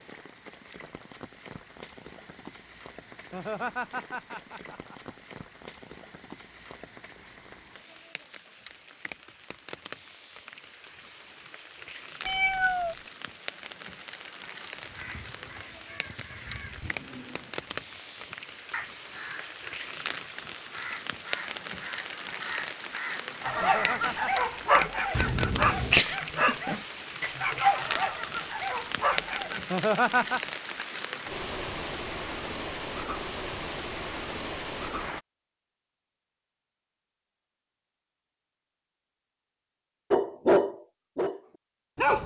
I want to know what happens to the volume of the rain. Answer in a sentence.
The volume of the rain goes up.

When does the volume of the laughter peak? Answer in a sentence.
The loudest moment of the laughter is at 30 seconds.